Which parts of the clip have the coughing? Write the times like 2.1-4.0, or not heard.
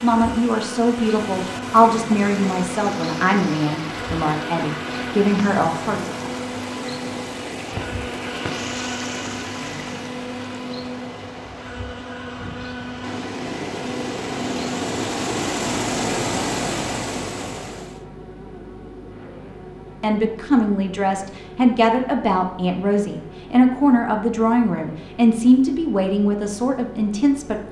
not heard.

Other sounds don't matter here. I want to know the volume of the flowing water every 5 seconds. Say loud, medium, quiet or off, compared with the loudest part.
medium, medium, medium, loud, off, off.